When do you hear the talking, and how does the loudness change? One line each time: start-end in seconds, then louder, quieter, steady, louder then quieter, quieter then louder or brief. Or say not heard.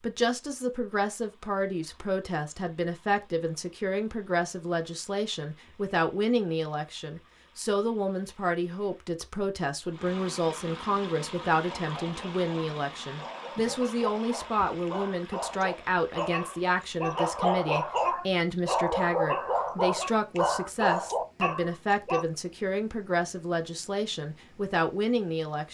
0.0-25.6 steady.